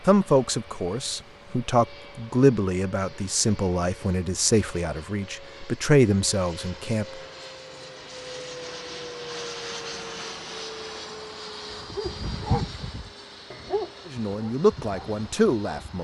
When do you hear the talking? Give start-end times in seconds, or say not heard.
0.1-7.0, 14.1-15.9.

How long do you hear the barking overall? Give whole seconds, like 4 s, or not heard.
4 s.